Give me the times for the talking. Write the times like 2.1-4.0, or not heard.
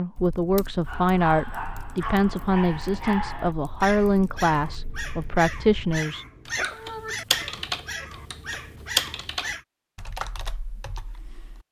0.0-6.2.